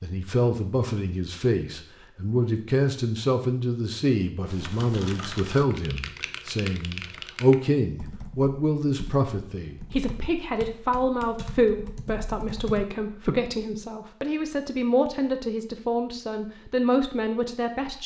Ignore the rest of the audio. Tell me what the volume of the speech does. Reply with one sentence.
The loudness of the speech stays about the same.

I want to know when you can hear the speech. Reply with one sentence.
You can hear the speech from 0.0 to 18.0 s.